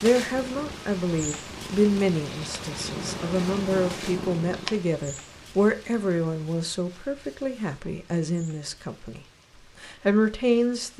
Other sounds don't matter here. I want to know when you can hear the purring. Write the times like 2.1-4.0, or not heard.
0.1-4.8.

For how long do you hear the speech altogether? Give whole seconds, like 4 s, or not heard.
10 s.